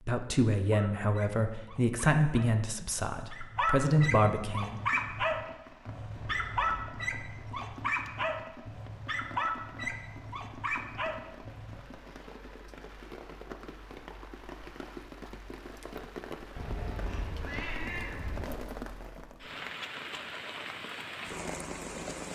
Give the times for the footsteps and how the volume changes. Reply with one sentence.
You can't hear the footsteps here.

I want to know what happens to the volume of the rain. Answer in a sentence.
The volume of the rain goes up.